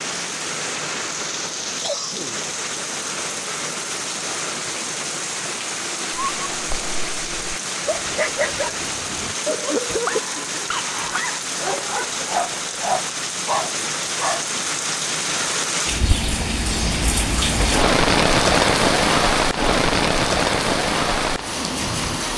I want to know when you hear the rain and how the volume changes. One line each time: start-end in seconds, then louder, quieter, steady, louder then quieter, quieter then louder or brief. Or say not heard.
0.0-22.3 louder.